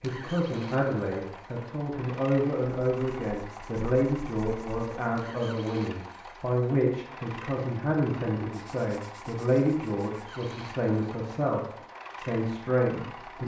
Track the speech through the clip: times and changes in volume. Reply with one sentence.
You can hear the speech from 0.0 to 13.4 s, at a steady volume.